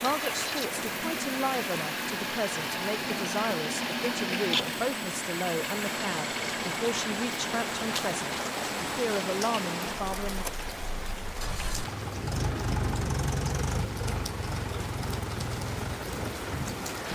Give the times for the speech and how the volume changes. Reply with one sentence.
You can hear the speech from 0.0 to 10.4 s, at a steady volume.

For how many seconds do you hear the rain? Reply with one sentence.
The rain can be heard for 17 seconds in total.